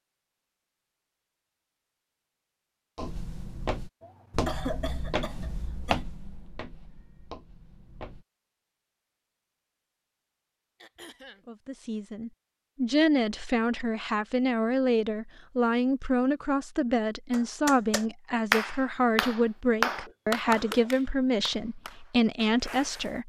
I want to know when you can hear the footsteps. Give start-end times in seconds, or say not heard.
3.0-8.2.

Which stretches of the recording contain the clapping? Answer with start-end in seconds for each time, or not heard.
17.3-23.2.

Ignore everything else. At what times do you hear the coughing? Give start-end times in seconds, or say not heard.
4.0-6.0, 10.8-11.4, 19.9-20.9.